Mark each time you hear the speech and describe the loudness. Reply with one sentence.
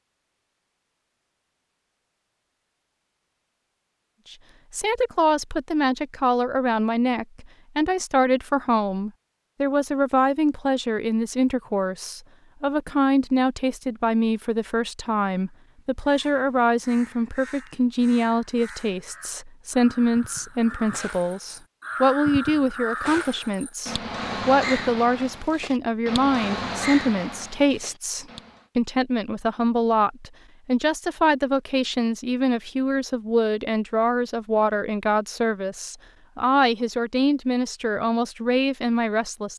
The speech can be heard from 4.3 to 39.5 s, at a steady volume.